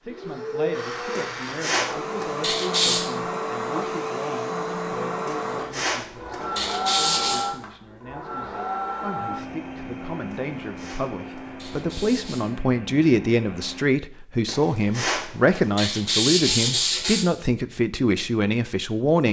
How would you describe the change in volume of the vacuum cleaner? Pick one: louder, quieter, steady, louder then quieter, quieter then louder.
quieter.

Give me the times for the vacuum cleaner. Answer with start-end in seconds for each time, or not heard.
0.1-13.8.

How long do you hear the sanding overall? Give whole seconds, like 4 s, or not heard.
9 s.